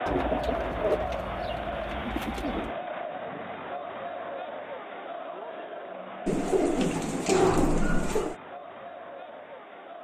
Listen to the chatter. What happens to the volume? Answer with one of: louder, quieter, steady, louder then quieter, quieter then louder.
quieter.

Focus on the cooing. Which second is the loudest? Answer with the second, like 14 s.
7 s.